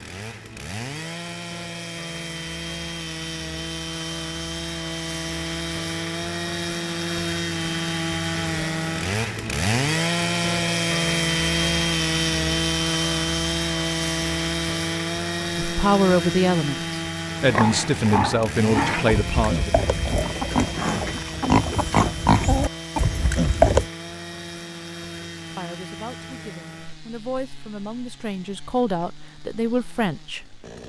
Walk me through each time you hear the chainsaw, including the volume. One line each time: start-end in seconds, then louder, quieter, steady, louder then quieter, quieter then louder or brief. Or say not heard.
0.0-30.8 louder then quieter.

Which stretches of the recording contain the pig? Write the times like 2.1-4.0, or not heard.
17.4-23.9.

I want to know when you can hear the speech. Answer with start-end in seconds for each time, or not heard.
15.6-19.9, 25.4-30.6.